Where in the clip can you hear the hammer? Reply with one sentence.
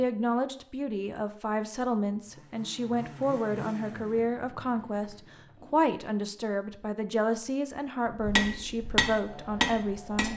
The hammer can be heard from 8.2 to 10.3 s.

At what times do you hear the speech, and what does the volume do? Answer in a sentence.
The speech can be heard from 0.0 to 10.3 s, at a steady volume.